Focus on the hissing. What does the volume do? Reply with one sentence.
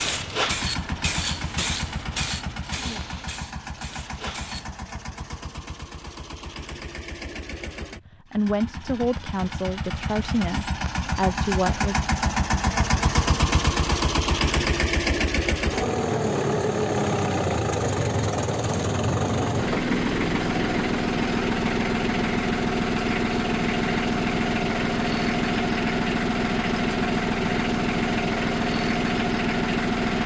The volume of the hissing goes down.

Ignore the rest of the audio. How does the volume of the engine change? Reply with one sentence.
The volume of the engine goes up.